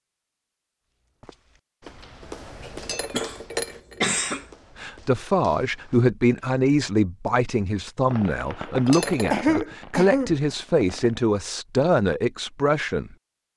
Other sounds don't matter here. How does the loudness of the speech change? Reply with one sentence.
The volume of the speech stays about the same.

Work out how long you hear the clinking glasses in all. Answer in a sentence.
The clinking glasses can be heard for 2 seconds in total.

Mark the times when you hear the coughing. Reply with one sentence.
The coughing can be heard from 3.1 to 4.5 s and from 9.3 to 10.3 s.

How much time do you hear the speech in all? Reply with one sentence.
The speech can be heard for 8 seconds in total.